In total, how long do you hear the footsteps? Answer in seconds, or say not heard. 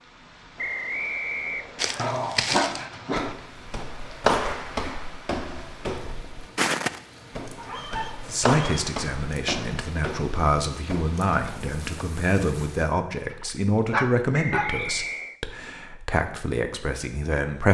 10 s.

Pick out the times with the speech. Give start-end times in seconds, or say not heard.
8.2-17.7.